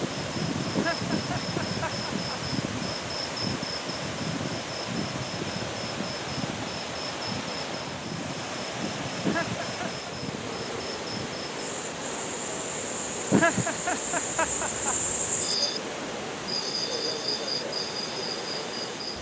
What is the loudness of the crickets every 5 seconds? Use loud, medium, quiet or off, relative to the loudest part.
loud, medium, loud, loud.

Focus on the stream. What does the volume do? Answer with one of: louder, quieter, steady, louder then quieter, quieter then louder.
steady.